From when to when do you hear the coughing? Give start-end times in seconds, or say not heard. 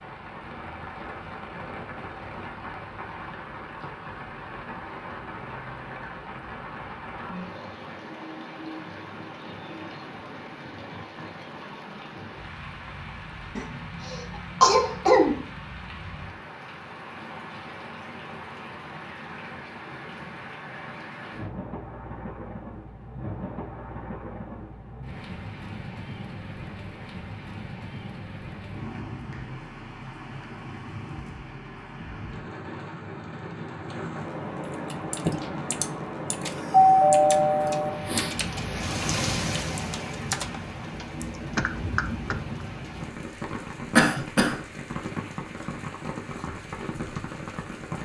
13.6-15.4, 44.0-44.5.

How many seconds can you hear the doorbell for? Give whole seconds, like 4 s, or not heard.
2 s.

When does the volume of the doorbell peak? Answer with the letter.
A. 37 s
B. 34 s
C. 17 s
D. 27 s
A.